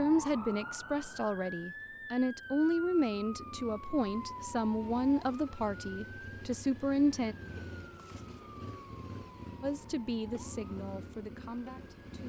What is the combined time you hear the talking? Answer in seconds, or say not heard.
10 s.